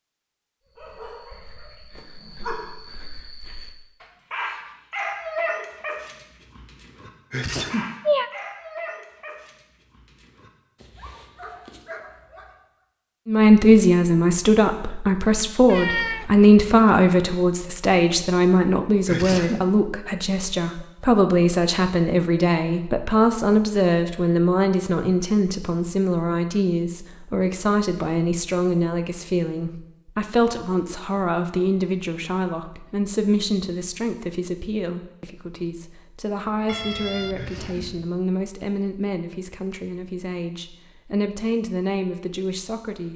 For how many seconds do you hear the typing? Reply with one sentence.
The typing can't be heard in this clip.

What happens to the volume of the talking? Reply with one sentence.
The volume of the talking goes down.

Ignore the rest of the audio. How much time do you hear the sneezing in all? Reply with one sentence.
The sneezing can be heard for 2 seconds in total.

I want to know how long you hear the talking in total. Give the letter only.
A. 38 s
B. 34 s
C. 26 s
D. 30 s
D.